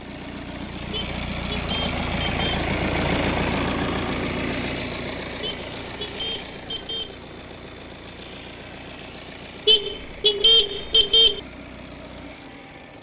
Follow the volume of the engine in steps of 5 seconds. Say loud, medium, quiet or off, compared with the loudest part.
loud, medium, quiet.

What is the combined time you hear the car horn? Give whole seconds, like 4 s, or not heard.
5 s.